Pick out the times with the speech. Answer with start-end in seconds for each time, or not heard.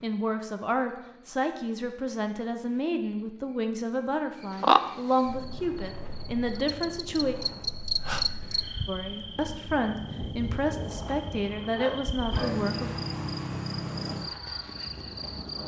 0.0-7.3, 8.8-12.9.